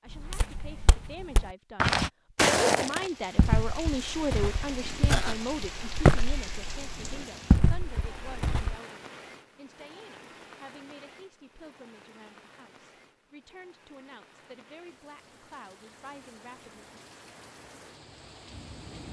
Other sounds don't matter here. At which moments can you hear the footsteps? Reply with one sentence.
You can hear the footsteps from 0.1 to 8.8 s.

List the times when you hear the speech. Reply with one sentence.
The speech can be heard from 0.0 to 17.0 s.